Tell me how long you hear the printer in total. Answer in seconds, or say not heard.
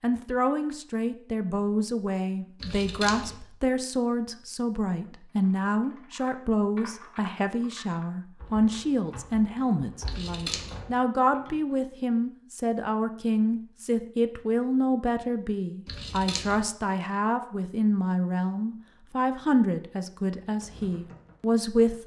not heard.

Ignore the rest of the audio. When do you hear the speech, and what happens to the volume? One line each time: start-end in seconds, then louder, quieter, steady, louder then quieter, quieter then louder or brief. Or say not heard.
0.0-22.0 steady.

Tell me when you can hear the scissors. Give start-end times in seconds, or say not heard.
2.6-3.4, 10.1-10.8, 15.8-16.6.